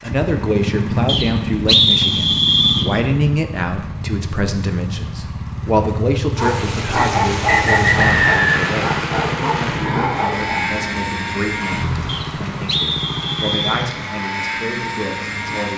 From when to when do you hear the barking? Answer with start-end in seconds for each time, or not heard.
6.3-10.8.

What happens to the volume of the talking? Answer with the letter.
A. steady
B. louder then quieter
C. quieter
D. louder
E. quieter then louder
C.